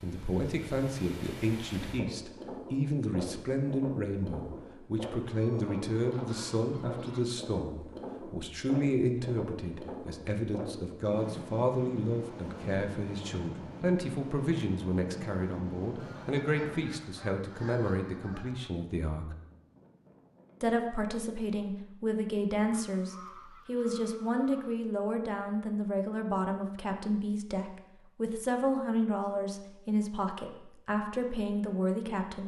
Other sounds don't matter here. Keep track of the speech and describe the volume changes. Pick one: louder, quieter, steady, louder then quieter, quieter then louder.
steady.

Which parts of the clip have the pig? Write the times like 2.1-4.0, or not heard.
not heard.